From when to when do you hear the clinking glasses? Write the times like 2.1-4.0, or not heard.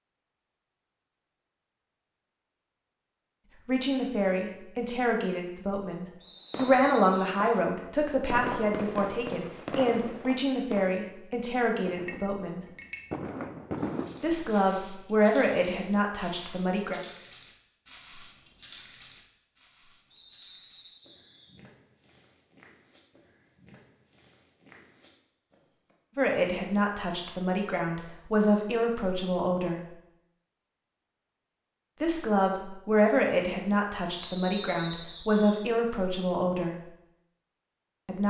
11.9-13.1.